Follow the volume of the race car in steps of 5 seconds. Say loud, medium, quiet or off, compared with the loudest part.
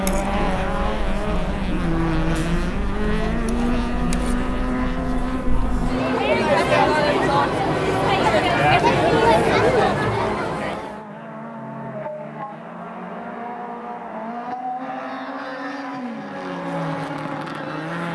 loud, loud, medium, loud.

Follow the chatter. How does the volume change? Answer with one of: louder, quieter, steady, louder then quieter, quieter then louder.
louder.